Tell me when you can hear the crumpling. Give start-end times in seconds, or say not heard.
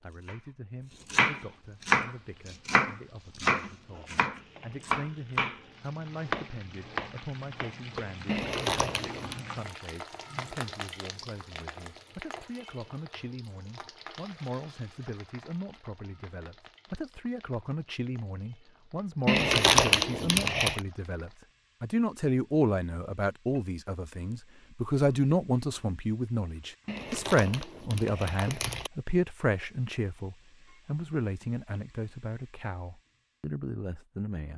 8.2-9.4, 19.2-20.8, 26.9-28.9.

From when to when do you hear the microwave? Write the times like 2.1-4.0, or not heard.
not heard.